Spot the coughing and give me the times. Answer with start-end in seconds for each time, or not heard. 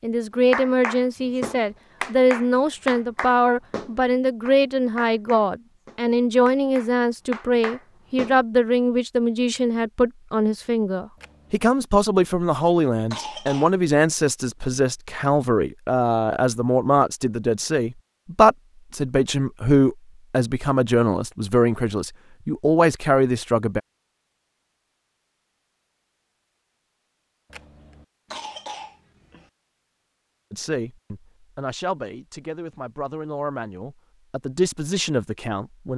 13.1-13.8, 28.3-29.5.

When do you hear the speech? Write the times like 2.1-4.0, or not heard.
0.0-23.8, 30.5-35.9.